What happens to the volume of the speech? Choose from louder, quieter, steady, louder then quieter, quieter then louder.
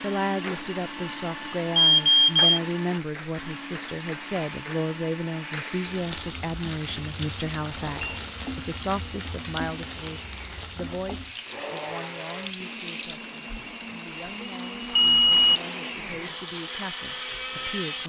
quieter.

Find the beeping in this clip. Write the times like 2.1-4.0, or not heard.
1.8-2.4, 7.8-8.2, 14.9-15.6.